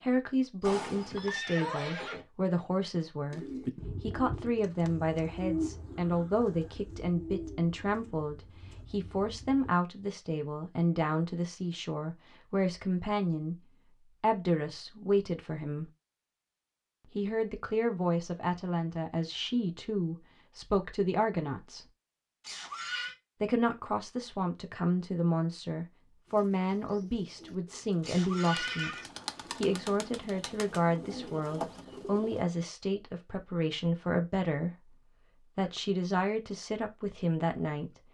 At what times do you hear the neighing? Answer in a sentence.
You can hear the neighing from 0.6 to 2.2 s, from 22.4 to 23.1 s and from 28.0 to 29.1 s.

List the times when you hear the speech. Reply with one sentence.
The speech can be heard from 0.0 to 13.6 s, from 14.2 to 15.9 s, from 17.1 to 21.9 s, from 23.4 to 34.9 s and from 35.5 to 38.0 s.